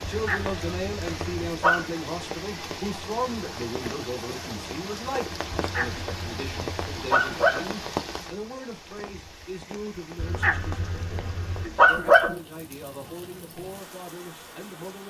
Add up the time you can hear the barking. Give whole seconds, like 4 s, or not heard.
6 s.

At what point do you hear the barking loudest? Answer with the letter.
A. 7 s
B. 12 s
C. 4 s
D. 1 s
B.